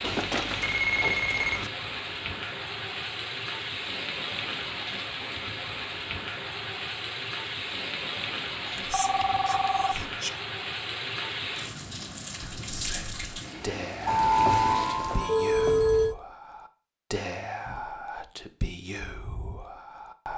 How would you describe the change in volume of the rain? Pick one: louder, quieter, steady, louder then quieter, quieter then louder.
steady.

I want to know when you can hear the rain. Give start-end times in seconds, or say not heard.
0.0-15.2.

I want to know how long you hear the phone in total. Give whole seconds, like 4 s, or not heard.
5 s.